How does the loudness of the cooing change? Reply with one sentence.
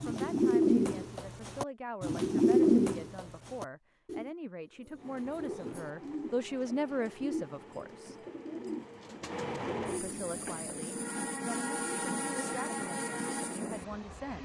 The loudness of the cooing goes down.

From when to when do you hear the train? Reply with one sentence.
You can hear the train from 5.0 to 14.3 s.